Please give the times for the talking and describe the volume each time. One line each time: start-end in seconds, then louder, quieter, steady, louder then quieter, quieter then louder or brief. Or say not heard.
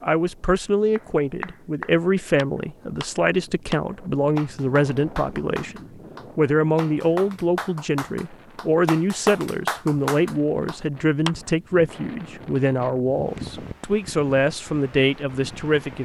0.0-15.9 steady.